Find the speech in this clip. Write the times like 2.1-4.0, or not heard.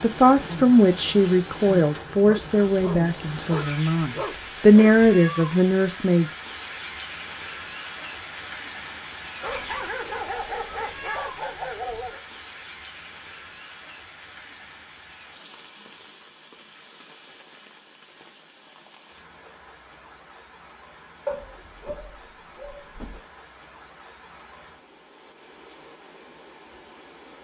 0.0-6.3.